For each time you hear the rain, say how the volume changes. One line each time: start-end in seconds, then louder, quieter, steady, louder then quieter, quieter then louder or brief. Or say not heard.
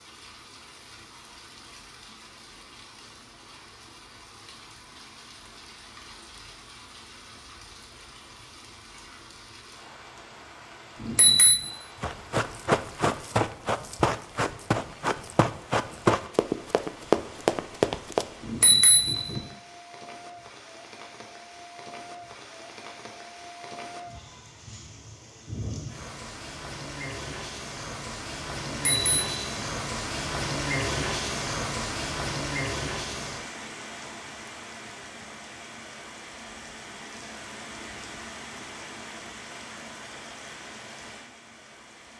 0.0-42.1 louder then quieter.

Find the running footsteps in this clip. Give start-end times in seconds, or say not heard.
12.0-18.2.